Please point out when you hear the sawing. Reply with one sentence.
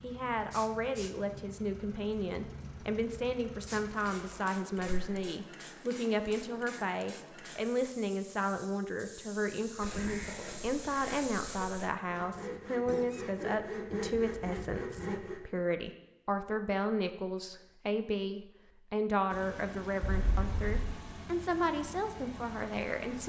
You can hear the sawing from 9.8 to 15.4 s.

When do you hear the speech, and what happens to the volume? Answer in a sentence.
The speech can be heard from 0.0 to 23.2 s, at a steady volume.